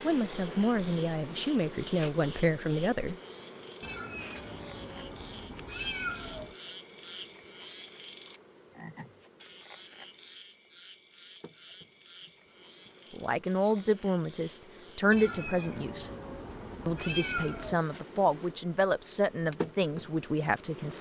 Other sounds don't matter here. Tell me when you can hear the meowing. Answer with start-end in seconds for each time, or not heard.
3.8-6.5, 15.1-17.8.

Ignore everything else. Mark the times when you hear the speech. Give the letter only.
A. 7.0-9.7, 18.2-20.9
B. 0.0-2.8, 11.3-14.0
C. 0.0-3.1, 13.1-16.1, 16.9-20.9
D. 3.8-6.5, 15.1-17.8
C.